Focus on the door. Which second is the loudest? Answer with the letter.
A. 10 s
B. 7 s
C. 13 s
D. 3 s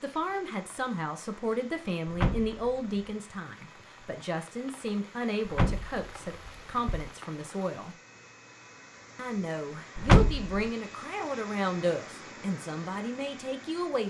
A.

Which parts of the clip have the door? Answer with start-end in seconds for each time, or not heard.
2.0-3.0, 5.5-7.1, 9.9-10.7.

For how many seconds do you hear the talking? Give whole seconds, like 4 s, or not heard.
13 s.